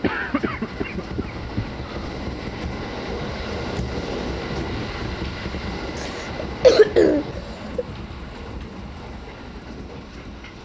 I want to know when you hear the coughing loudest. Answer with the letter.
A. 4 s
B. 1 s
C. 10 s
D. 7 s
D.